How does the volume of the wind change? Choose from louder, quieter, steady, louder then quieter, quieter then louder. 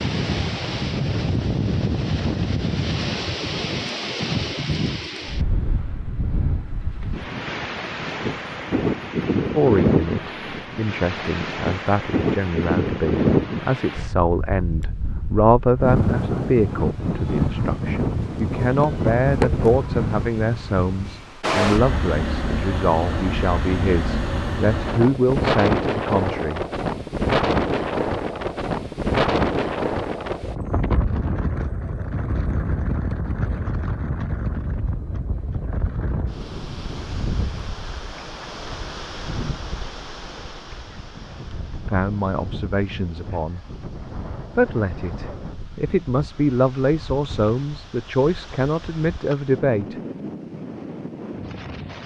quieter.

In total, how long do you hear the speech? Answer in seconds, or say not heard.
24 s.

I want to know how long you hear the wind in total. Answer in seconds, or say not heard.
52 s.